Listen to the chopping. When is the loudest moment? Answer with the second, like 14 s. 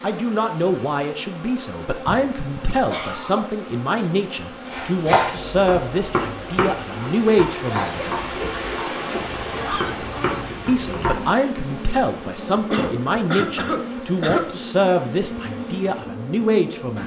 5 s.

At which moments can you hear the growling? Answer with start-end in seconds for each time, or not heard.
8.9-10.5.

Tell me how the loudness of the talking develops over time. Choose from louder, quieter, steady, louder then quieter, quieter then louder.
steady.